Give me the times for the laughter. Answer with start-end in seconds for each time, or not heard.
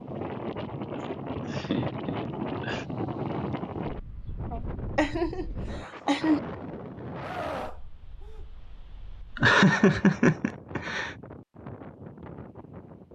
1.4-2.9, 4.5-6.4, 9.3-11.2.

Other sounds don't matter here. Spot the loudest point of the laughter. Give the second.
10 s.